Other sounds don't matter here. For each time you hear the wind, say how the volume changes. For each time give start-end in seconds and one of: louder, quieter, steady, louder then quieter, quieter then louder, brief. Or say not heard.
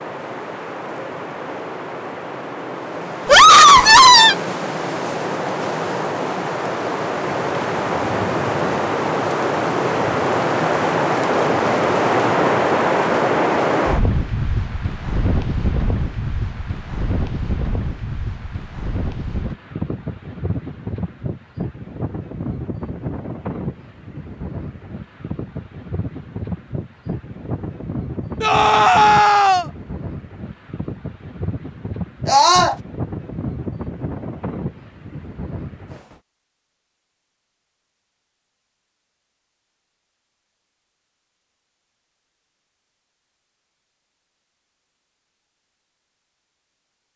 0.0-36.2 louder then quieter.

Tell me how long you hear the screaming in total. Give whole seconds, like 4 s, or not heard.
3 s.